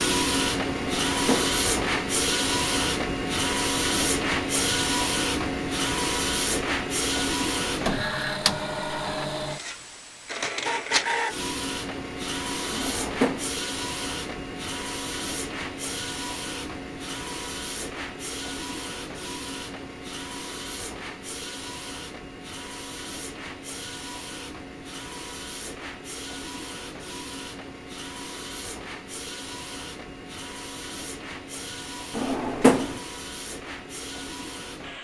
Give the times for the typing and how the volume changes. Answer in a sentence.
You can't hear the typing here.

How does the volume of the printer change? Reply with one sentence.
The volume of the printer goes down.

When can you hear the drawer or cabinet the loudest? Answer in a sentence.
The volume of the drawer or cabinet peaks at 33 seconds.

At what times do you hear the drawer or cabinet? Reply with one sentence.
You can hear the drawer or cabinet from 0.8 to 1.6 s, from 12.7 to 13.6 s and from 32.1 to 33.0 s.